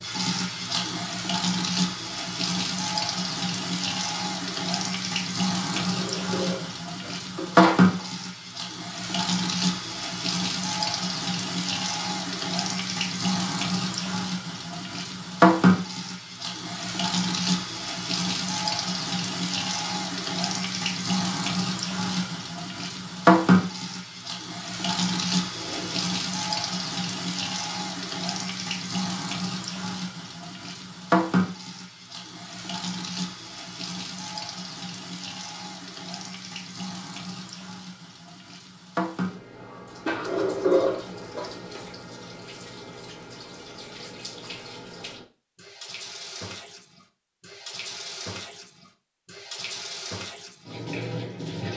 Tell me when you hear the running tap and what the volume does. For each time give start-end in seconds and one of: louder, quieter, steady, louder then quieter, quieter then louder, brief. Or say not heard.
0.0-51.7 quieter.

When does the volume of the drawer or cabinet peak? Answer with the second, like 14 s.
41 s.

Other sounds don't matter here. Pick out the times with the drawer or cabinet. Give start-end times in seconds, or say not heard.
5.7-7.9, 25.5-26.1, 40.0-41.5.